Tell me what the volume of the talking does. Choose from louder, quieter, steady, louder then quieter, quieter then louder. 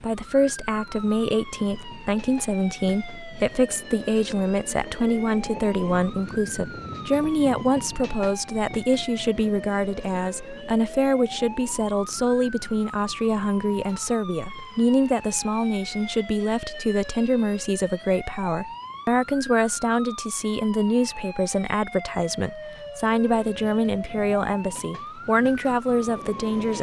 steady.